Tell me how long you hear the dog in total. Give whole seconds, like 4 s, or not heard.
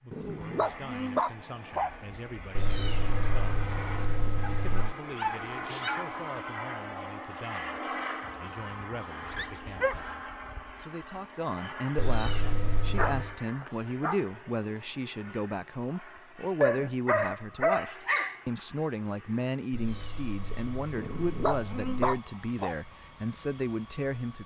11 s.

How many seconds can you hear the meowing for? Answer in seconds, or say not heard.
6 s.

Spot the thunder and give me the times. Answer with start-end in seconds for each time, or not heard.
not heard.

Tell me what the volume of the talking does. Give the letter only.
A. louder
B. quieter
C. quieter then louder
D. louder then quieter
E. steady
A.